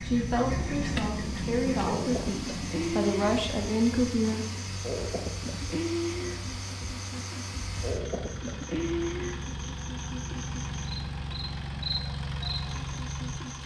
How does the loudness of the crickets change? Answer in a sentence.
The volume of the crickets stays about the same.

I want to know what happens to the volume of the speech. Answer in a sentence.
The loudness of the speech goes up.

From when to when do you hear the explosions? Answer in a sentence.
The explosions can be heard from 0.5 to 3.0 s.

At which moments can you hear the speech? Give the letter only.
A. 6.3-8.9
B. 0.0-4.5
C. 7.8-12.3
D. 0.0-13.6
B.